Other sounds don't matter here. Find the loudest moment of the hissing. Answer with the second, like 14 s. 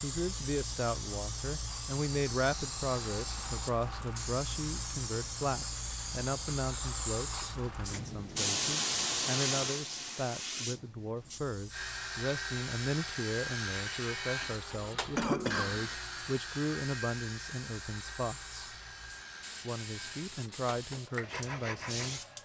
9 s.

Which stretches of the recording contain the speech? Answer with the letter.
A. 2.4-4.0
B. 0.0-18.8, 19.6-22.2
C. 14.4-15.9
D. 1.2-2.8
B.